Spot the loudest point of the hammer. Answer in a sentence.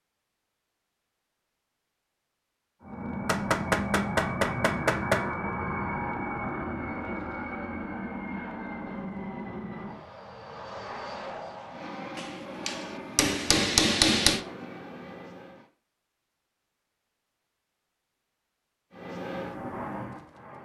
The volume of the hammer peaks at 14 seconds.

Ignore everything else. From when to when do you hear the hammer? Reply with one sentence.
The hammer can be heard from 3.2 to 5.2 s and from 12.2 to 14.4 s.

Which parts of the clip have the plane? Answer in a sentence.
You can hear the plane from 2.8 to 15.7 s and from 18.9 to 20.5 s.